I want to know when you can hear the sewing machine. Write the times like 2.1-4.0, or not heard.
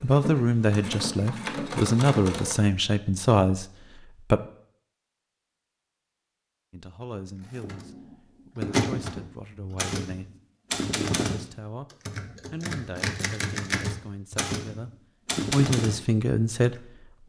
0.0-2.5.